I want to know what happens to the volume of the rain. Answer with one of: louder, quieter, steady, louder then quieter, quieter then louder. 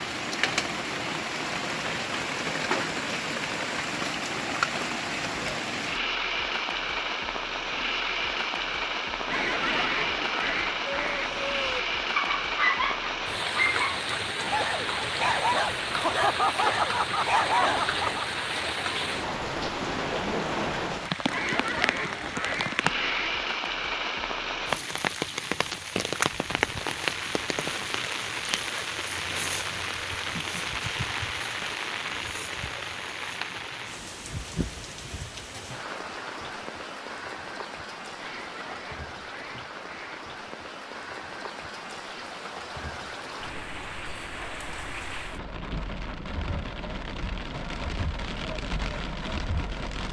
quieter.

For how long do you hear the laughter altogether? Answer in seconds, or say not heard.
2 s.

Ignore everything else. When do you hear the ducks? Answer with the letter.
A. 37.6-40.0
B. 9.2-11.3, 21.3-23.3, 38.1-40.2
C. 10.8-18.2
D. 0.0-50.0
B.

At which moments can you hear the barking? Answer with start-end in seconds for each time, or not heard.
10.8-18.2.